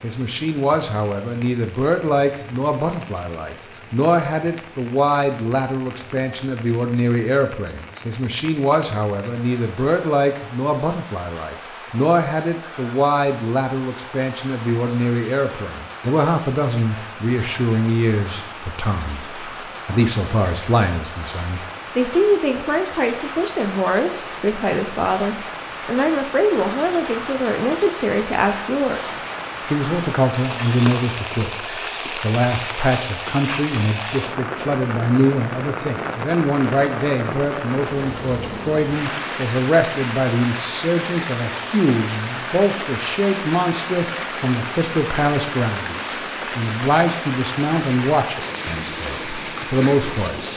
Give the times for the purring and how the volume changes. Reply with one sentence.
The purring can't be heard in this clip.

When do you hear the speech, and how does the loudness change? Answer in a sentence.
You can hear the speech from 0.0 to 50.5 s, at a steady volume.